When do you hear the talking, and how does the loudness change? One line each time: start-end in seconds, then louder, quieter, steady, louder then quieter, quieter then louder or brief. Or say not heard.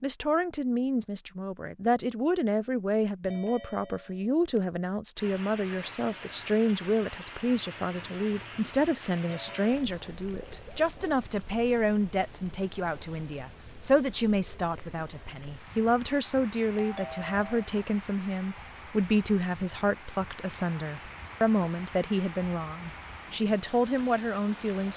0.0-24.9 steady.